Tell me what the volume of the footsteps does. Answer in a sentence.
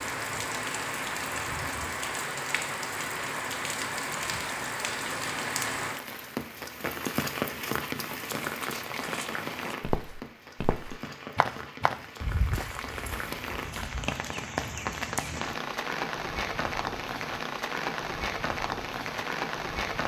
The loudness of the footsteps goes up, then down.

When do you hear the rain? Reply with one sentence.
The rain can be heard from 0.0 to 20.0 s.